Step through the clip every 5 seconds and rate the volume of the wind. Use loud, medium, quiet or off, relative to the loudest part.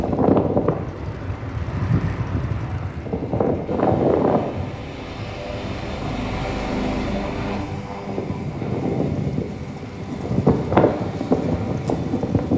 loud, medium, loud.